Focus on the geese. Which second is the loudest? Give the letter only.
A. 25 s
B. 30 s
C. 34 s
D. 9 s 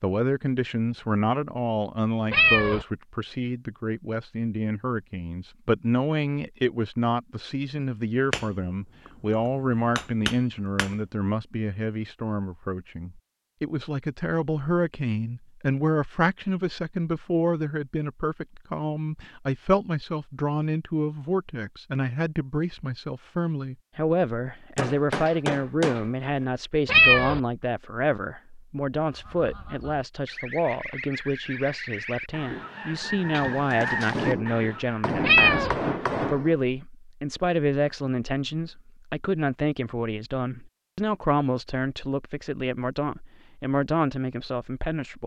C.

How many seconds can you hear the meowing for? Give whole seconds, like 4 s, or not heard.
2 s.